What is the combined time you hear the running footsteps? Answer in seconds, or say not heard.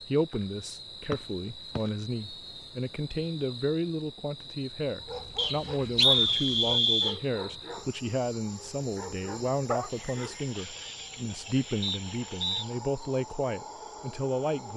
not heard.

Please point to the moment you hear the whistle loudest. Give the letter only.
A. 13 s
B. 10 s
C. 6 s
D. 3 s
C.